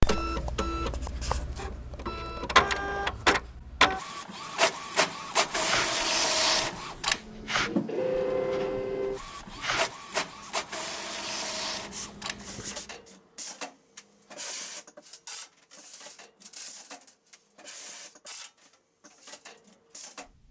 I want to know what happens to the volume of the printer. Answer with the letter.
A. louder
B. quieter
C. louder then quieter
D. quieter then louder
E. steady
B.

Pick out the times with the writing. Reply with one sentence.
The writing can be heard from 5.5 to 13.2 s.